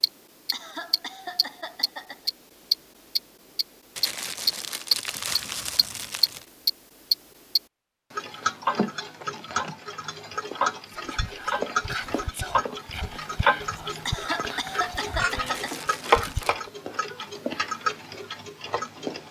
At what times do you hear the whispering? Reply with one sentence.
You can hear the whispering from 10.9 to 16.6 s.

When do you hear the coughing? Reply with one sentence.
The coughing can be heard from 0.5 to 2.3 s and from 14.1 to 15.8 s.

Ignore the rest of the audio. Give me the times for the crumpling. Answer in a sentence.
The crumpling can be heard from 4.0 to 6.5 s and from 15.4 to 16.6 s.